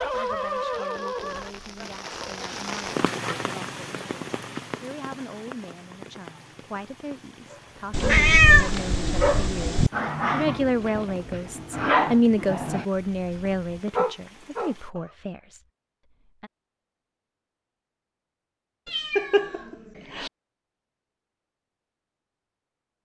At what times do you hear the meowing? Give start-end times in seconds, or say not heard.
7.9-9.9, 18.9-20.3.